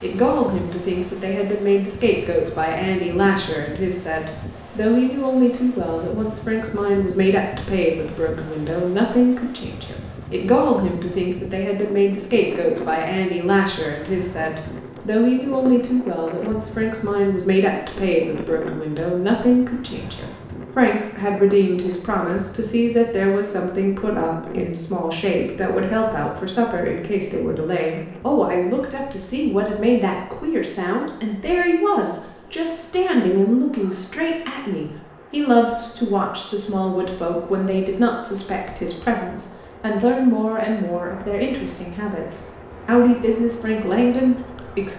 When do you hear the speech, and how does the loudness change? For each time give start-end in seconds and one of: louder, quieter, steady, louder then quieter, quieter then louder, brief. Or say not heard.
0.0-44.9 steady.